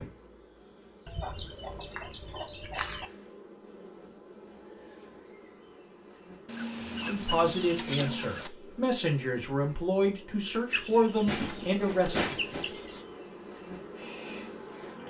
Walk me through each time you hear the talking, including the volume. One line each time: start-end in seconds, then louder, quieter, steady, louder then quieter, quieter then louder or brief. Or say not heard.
7.0-12.3 steady.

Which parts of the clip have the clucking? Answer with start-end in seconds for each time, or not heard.
1.1-3.1, 6.5-8.5, 10.7-13.1.